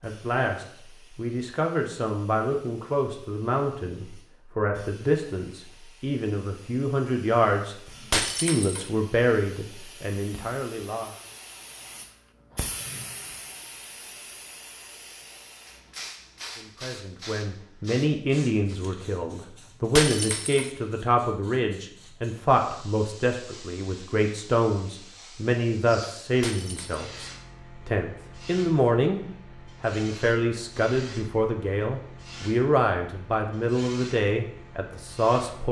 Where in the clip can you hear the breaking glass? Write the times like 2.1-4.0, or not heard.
8.1-8.9, 19.9-20.7, 26.4-27.1.